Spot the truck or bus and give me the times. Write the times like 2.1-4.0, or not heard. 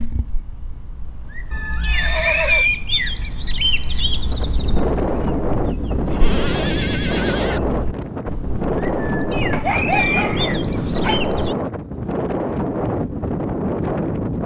not heard.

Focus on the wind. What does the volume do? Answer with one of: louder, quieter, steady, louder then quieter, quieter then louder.
steady.